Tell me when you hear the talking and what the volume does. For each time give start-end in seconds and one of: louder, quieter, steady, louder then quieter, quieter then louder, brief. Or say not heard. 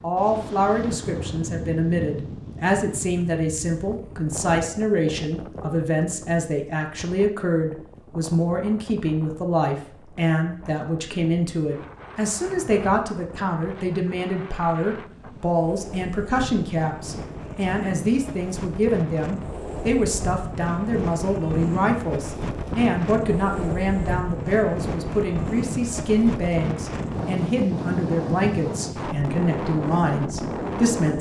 0.0-31.1 steady.